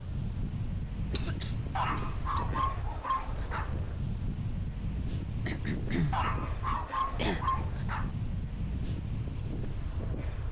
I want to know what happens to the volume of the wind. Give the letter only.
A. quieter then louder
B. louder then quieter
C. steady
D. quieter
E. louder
C.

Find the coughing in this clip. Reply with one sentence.
The coughing can be heard from 1.1 to 2.5 s and from 5.5 to 7.5 s.